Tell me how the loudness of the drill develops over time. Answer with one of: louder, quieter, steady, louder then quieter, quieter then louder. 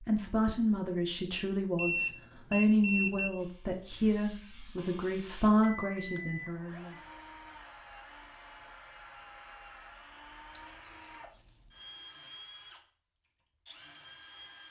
steady.